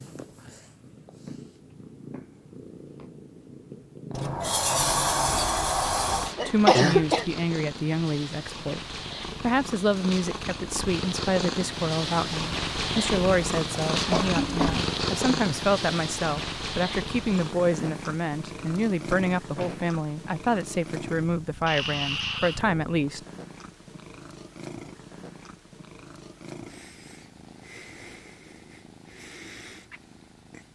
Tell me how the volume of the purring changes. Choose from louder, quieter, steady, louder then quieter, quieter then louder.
louder then quieter.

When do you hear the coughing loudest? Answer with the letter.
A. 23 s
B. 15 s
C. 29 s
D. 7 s
D.